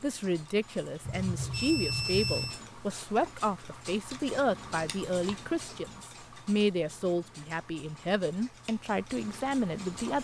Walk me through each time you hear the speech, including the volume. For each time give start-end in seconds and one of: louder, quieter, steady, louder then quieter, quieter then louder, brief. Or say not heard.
0.0-10.1 steady.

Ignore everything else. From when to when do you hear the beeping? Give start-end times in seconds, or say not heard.
1.1-2.6.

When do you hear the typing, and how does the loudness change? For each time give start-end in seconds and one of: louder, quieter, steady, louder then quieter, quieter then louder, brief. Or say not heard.
not heard.